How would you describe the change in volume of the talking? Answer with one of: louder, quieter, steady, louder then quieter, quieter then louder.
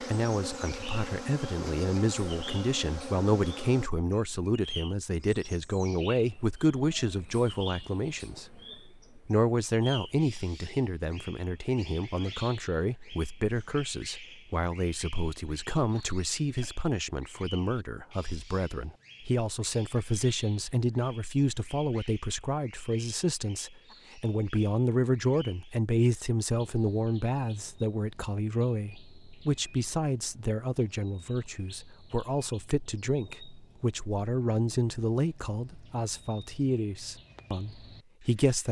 steady.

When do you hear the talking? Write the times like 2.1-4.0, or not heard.
0.0-38.6.